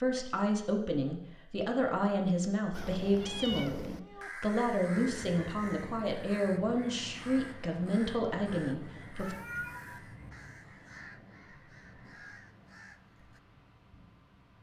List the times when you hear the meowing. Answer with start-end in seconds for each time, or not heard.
3.2-4.3, 9.2-10.2.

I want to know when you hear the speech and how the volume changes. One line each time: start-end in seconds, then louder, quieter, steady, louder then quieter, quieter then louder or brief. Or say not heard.
0.0-9.3 steady.